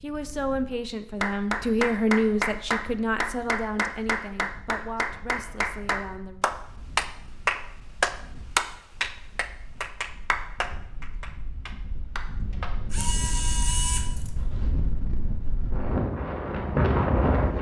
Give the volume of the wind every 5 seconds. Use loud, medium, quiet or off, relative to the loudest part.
quiet, quiet, quiet, loud.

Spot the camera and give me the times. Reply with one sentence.
You can hear the camera from 12.9 to 14.4 s.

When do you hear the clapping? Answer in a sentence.
The clapping can be heard from 1.2 to 12.8 s.